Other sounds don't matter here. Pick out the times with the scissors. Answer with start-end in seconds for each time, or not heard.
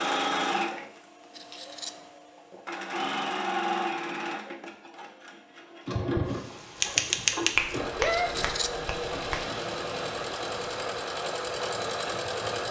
1.3-2.0, 8.1-8.7.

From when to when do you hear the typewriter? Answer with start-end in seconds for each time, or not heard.
6.8-8.5.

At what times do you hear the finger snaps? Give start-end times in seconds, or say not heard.
7.5-9.4.